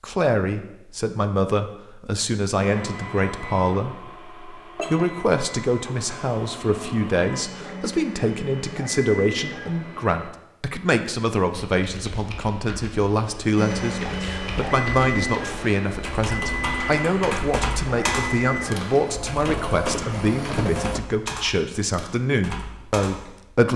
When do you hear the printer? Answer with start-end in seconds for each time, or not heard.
2.5-10.3, 13.6-21.0.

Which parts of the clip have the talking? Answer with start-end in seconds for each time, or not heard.
0.0-23.7.